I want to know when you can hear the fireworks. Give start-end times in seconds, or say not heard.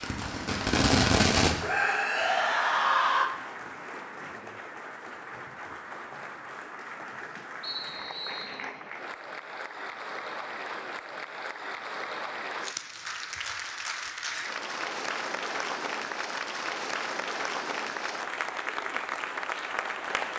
0.0-1.6.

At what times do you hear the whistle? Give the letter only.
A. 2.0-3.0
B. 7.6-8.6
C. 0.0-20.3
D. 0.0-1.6
B.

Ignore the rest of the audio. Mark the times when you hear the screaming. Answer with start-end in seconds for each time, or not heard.
1.6-3.3.